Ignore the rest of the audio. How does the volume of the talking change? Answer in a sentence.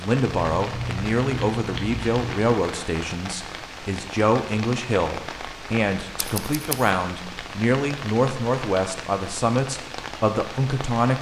The volume of the talking stays about the same.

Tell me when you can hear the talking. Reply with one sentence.
You can hear the talking from 0.0 to 11.1 s.